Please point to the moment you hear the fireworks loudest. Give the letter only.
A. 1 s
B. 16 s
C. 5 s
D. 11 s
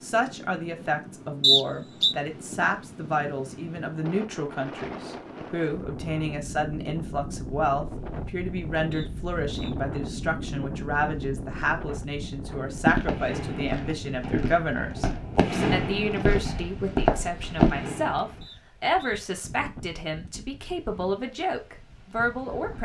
B.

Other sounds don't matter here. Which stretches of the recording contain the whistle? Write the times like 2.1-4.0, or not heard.
1.4-2.1, 8.9-9.8, 18.4-19.2.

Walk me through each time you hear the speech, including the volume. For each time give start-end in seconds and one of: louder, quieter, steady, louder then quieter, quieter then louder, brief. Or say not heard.
0.0-22.8 steady.